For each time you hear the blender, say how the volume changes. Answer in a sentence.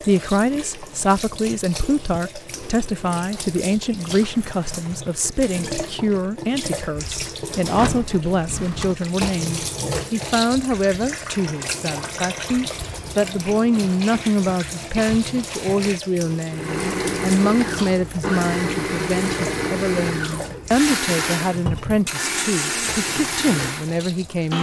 You can hear the blender from 16.5 to 24.5 s, at a steady volume.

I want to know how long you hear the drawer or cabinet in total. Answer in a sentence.
You can hear the drawer or cabinet for 2 seconds altogether.